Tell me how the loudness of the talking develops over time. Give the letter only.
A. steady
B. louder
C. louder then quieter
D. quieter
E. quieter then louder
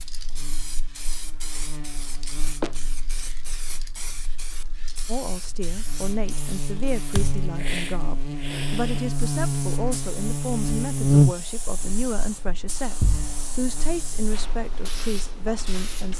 A.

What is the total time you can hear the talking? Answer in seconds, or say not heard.
11 s.